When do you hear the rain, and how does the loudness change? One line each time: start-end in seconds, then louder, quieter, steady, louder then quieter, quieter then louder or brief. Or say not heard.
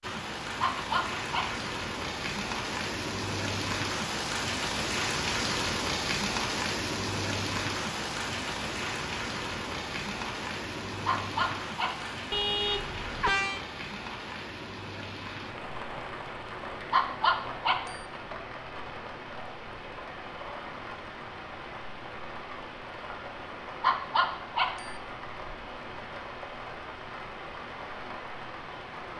0.0-29.1 quieter.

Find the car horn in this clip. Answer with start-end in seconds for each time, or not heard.
12.3-13.6.